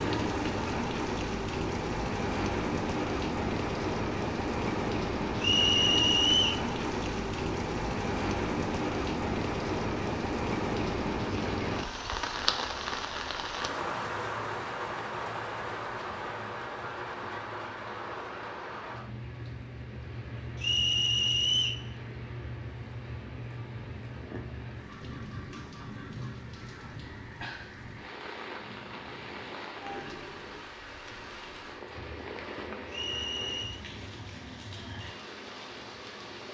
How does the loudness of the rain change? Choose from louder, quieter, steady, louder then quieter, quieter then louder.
quieter.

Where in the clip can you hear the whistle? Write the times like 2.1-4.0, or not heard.
5.4-6.7, 20.6-21.9, 32.9-33.8.